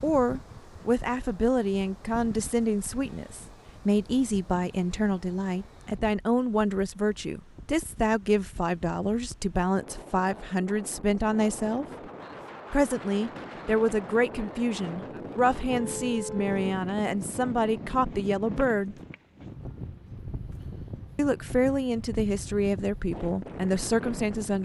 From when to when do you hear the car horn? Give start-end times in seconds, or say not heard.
15.7-16.8.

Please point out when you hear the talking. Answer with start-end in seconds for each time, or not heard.
0.0-11.8, 12.7-18.9, 21.1-24.6.